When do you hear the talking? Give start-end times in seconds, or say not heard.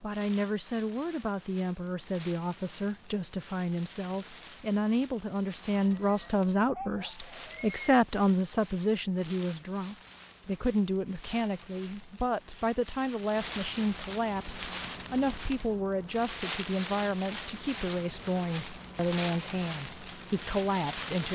0.0-21.3.